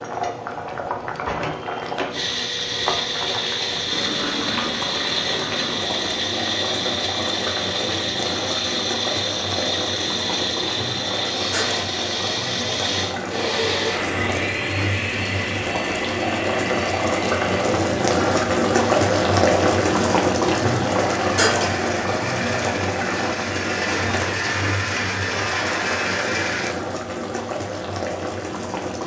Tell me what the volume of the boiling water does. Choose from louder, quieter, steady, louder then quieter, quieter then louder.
louder then quieter.